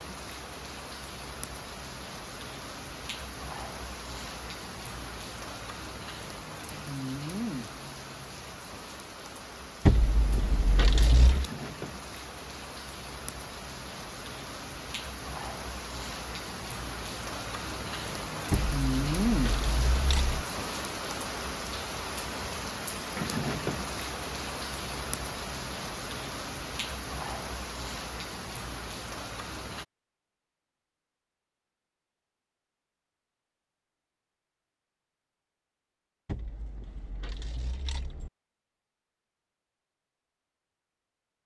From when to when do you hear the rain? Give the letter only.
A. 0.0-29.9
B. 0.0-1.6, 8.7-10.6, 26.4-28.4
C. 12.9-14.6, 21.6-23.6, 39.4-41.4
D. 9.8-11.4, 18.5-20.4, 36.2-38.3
A.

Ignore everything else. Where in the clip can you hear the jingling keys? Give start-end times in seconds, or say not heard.
9.8-11.4, 18.5-20.4, 36.2-38.3.